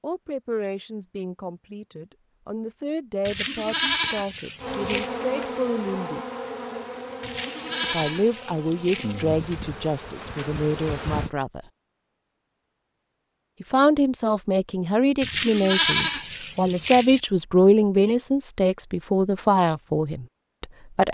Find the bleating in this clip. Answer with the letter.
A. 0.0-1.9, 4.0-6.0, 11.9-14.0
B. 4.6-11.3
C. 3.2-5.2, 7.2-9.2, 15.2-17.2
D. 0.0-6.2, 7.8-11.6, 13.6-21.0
C.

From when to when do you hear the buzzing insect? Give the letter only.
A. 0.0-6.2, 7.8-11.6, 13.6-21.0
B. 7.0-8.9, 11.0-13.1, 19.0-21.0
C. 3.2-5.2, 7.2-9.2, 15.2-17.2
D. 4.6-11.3
D.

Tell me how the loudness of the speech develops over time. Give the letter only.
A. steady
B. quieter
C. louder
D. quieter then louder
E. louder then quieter
C.